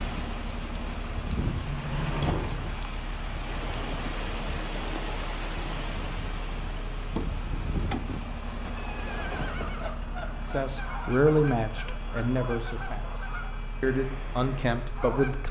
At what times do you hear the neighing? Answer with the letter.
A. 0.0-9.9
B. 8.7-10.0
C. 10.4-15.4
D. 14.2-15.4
B.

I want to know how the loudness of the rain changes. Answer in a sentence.
The volume of the rain stays about the same.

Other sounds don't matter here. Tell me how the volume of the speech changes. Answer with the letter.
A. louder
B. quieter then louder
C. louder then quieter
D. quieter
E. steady
B.